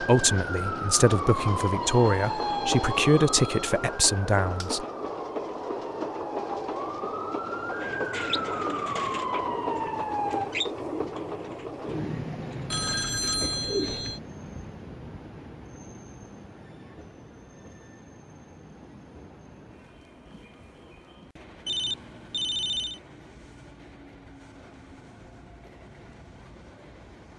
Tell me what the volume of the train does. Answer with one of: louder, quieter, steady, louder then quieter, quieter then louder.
quieter.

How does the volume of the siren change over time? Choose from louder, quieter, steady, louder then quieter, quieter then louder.
quieter then louder.